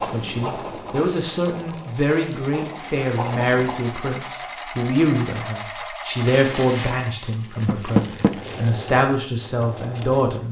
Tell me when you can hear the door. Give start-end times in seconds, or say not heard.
7.7-8.3.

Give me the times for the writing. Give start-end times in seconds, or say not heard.
0.0-3.8.